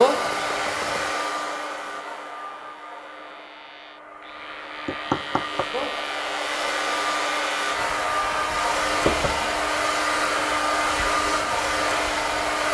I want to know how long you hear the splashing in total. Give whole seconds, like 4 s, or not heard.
not heard.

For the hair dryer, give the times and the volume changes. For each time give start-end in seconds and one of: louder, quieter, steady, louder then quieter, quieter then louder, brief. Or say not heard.
0.0-12.6 quieter then louder.